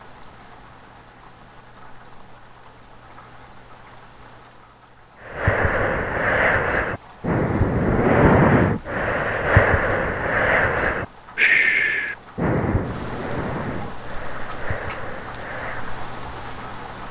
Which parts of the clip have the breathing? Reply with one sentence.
You can hear the breathing from 5.2 to 16.1 s.